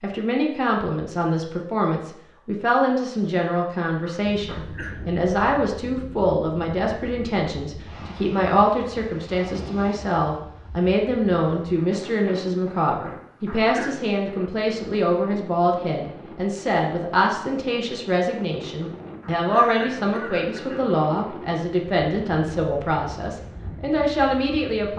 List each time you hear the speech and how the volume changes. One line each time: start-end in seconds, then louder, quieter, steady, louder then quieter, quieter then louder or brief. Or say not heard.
0.0-24.9 steady.